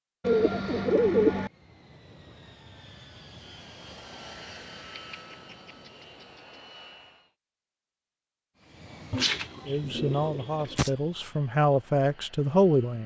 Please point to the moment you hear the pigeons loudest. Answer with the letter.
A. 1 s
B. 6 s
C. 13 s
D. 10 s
A.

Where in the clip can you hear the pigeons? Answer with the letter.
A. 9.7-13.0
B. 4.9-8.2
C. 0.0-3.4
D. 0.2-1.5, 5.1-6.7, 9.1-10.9
D.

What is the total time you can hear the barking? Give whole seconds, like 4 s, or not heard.
not heard.